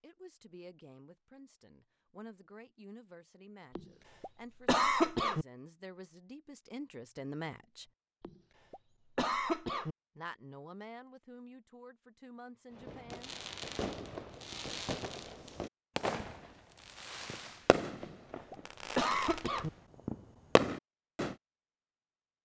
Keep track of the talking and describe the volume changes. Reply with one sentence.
The loudness of the talking goes up, then down.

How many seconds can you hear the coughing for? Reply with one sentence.
You can hear the coughing for 5 seconds altogether.